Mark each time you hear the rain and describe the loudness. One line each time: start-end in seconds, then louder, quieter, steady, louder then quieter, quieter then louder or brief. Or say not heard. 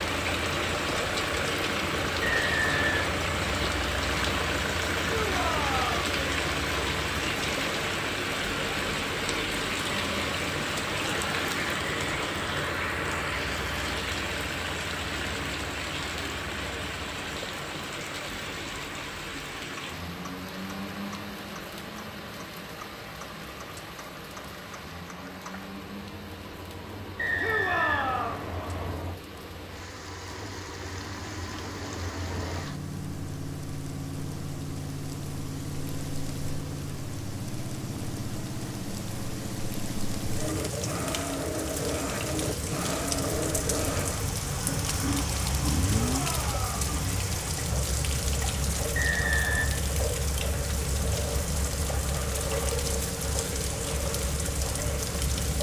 0.0-55.5 quieter then louder.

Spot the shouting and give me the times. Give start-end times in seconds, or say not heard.
5.0-6.0, 27.4-28.4, 45.9-46.9.